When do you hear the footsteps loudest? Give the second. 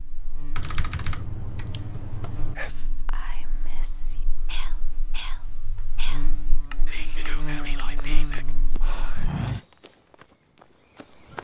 9 s.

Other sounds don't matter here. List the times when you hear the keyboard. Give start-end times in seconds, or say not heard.
0.6-2.5, 6.6-8.4.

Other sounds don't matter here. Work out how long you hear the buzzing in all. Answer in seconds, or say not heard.
9 s.